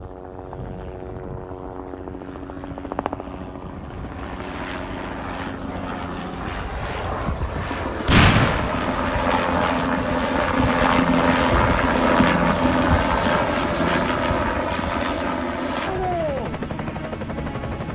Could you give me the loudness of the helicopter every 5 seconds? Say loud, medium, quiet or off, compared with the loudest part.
quiet, medium, loud, medium.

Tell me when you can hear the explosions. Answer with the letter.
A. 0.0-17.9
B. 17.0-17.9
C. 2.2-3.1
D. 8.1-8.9
D.